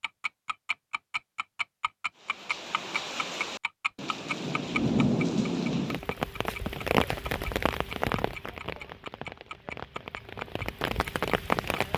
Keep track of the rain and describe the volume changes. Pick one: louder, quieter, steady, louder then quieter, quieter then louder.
louder then quieter.